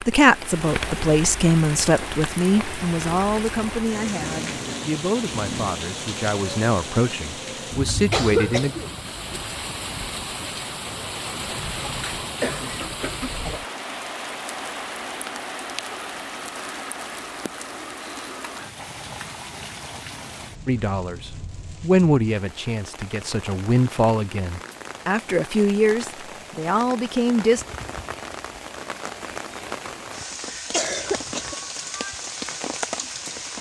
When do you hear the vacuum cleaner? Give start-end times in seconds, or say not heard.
not heard.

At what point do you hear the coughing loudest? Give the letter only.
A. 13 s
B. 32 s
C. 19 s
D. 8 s
D.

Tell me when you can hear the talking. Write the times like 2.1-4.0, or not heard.
0.0-8.8, 20.6-27.6.